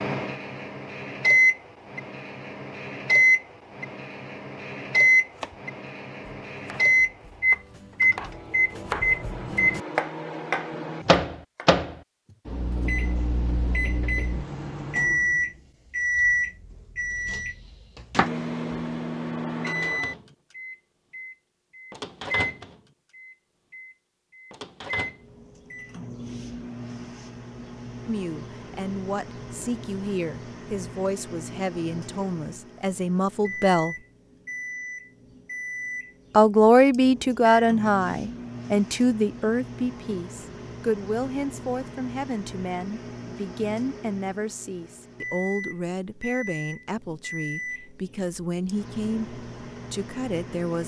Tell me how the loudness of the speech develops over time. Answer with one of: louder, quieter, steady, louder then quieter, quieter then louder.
louder then quieter.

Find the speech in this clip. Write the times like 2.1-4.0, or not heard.
28.1-34.0, 36.3-50.8.